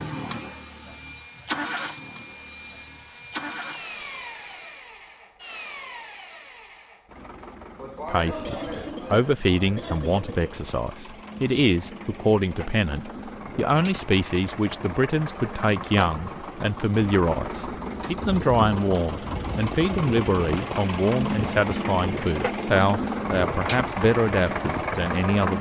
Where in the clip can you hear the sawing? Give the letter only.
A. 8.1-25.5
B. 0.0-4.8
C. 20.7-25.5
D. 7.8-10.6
B.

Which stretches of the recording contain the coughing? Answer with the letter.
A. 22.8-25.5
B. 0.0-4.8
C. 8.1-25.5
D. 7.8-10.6
D.